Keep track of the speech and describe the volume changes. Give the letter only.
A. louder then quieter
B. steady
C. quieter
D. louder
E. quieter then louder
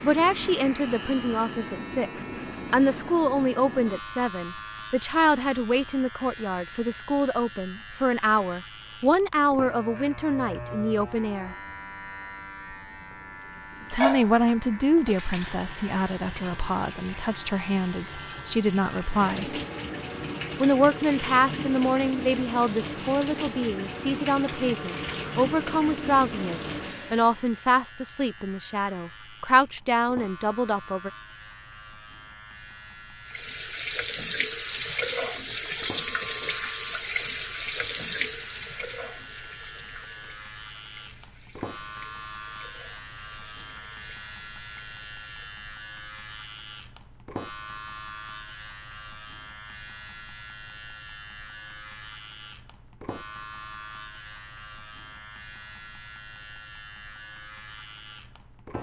B.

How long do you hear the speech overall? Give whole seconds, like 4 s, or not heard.
28 s.